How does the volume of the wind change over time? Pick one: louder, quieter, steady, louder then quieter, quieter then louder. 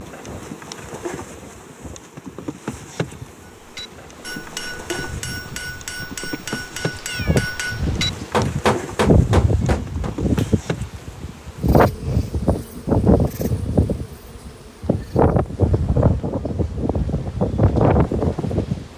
louder.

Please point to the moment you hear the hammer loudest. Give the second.
9 s.